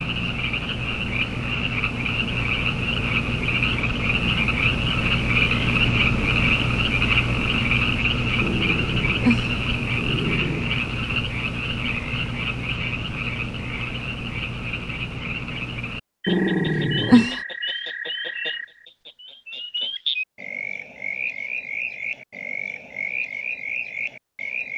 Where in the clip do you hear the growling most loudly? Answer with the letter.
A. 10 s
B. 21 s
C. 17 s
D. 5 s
C.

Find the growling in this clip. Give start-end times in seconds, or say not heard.
8.4-10.7, 16.2-17.4.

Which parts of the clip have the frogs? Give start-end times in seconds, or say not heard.
0.0-24.7.